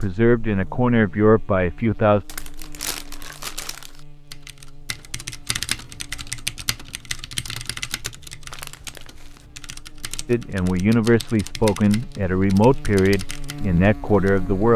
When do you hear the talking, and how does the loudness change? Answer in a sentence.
You can hear the talking briefly from 0.0 to 2.2 s; and from 10.2 to 14.7 s, at a steady volume.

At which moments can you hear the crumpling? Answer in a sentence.
The crumpling can be heard from 2.2 to 4.0 s and from 8.5 to 9.4 s.